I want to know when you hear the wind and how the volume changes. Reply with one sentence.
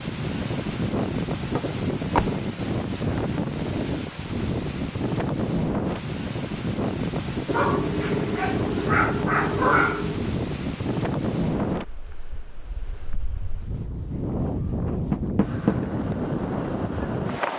You can hear the wind from 0.0 to 17.5 s, at a steady volume.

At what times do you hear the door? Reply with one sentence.
You can hear the door from 1.6 to 2.4 s and from 15.1 to 15.8 s.